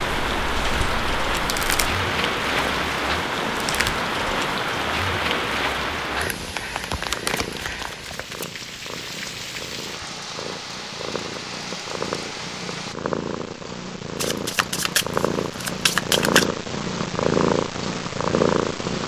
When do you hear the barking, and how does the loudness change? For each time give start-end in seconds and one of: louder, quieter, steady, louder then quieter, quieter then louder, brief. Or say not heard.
not heard.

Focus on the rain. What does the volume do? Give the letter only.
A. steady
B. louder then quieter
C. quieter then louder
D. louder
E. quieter
E.